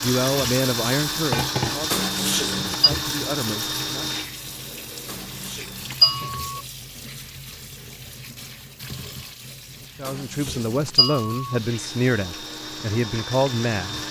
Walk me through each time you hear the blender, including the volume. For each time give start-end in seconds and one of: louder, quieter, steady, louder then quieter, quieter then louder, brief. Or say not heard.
0.0-6.3 quieter
11.4-14.0 brief.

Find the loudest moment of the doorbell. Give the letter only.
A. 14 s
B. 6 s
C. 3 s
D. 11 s
B.